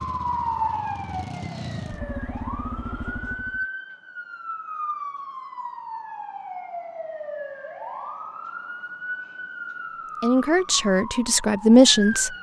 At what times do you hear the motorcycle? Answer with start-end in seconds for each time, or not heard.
0.0-3.6.